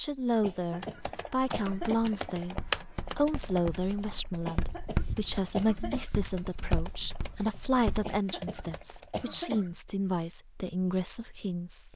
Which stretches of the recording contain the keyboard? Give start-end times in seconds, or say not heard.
0.6-9.5.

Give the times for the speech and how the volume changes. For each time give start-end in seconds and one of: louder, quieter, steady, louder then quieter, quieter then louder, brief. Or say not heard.
0.0-11.9 steady.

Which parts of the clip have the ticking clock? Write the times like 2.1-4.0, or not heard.
not heard.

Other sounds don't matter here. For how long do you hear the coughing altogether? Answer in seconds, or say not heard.
5 s.